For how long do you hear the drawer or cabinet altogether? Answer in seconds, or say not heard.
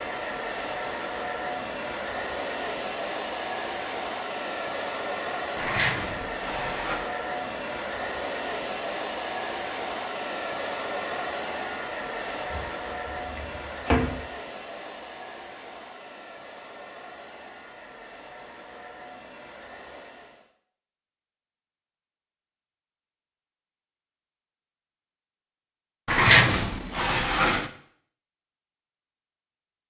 5 s.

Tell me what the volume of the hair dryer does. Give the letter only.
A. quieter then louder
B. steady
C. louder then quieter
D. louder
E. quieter
E.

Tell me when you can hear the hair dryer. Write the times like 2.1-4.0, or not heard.
0.0-20.5.